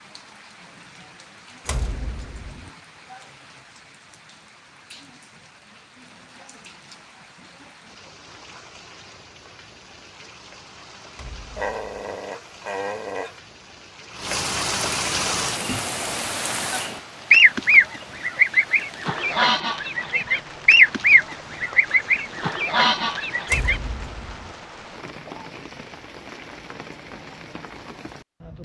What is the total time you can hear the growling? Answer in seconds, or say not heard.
2 s.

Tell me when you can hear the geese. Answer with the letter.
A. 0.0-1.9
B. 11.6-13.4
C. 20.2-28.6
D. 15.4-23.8
D.